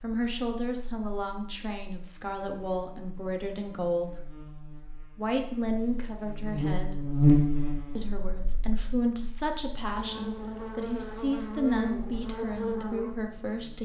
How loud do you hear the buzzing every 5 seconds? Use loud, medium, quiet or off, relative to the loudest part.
quiet, loud, medium.